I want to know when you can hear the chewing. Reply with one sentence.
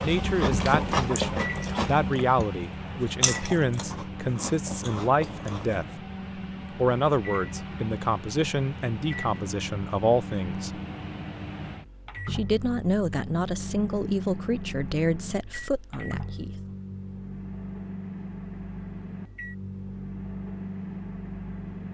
You can hear the chewing from 0.0 to 5.8 s.